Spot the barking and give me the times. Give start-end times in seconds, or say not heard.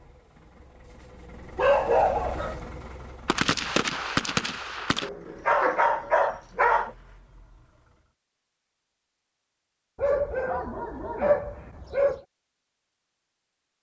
1.6-2.6, 5.0-6.9, 9.9-12.2.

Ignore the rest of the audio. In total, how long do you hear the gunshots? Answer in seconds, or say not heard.
2 s.